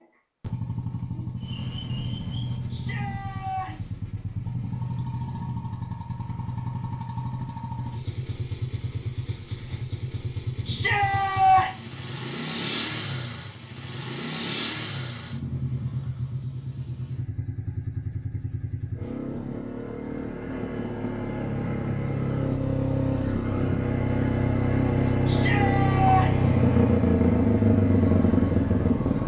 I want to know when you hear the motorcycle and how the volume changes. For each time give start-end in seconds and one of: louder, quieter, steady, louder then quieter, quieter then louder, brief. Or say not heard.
0.0-29.2 louder.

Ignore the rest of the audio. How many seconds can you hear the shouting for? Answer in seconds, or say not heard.
4 s.